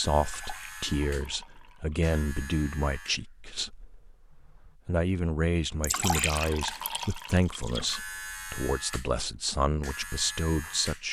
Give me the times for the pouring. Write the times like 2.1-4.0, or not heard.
0.2-2.1, 5.8-8.0.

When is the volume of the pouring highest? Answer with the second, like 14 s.
6 s.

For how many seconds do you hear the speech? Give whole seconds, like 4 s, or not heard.
11 s.